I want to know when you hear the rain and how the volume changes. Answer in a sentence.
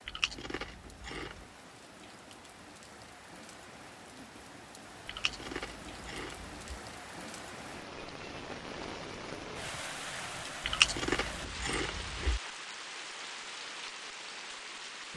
You can hear the rain from 0.0 to 15.1 s, getting louder.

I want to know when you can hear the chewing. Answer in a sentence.
The chewing can be heard from 0.1 to 1.4 s, from 5.0 to 6.6 s and from 10.7 to 12.4 s.